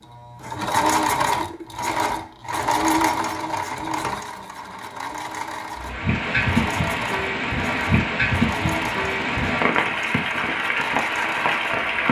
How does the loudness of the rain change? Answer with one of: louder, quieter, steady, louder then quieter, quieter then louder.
steady.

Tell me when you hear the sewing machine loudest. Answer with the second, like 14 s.
1 s.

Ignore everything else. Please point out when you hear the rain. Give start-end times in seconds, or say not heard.
5.8-12.0.